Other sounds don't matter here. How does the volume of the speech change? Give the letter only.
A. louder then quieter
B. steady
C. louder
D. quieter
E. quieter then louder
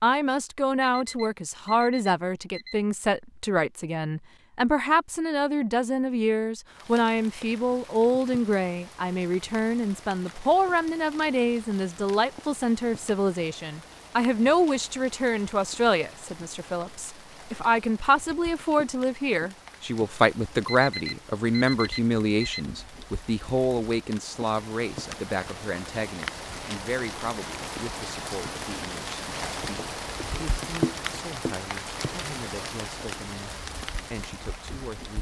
D.